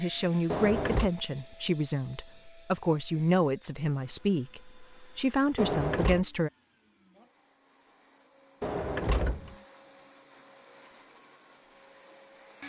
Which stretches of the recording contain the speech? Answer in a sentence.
The speech can be heard from 0.0 to 6.5 s.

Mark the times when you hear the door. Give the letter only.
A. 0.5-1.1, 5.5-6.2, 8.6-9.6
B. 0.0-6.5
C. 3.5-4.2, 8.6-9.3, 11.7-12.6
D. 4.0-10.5
A.